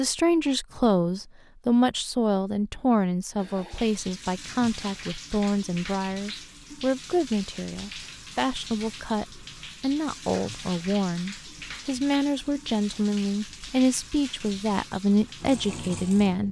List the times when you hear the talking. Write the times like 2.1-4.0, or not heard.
0.0-16.4.